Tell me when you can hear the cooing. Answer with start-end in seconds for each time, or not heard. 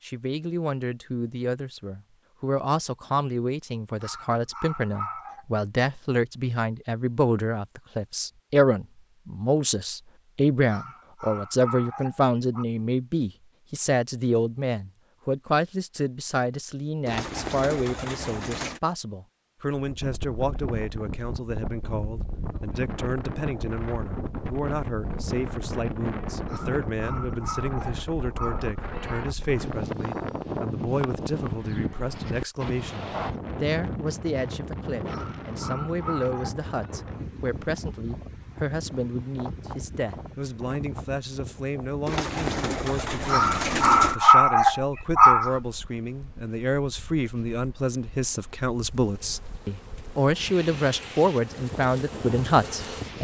17.1-18.8, 42.0-44.1.